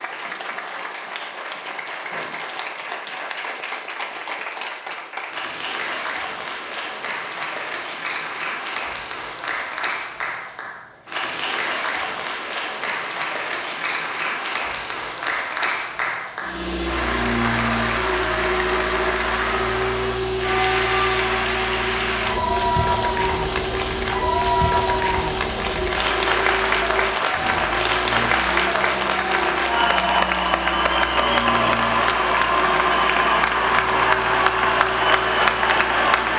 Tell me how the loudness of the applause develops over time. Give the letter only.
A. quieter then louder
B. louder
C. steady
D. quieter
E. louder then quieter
B.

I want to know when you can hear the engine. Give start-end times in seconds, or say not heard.
16.4-36.3.